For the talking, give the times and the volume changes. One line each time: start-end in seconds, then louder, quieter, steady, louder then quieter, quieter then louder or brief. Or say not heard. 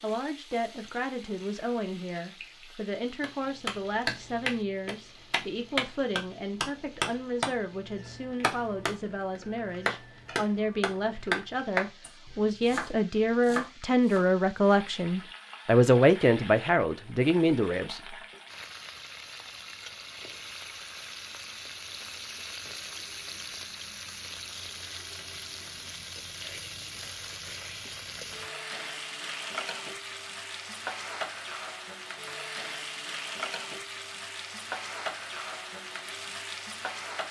0.0-18.1 louder.